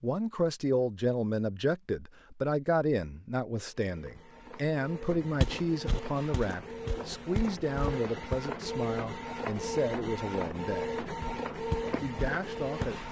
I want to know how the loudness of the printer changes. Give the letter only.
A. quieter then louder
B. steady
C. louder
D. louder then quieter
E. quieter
C.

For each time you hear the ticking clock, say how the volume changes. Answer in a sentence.
The ticking clock can't be heard in this clip.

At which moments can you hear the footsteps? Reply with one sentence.
The footsteps can be heard from 5.4 to 8.4 s and from 11.2 to 13.0 s.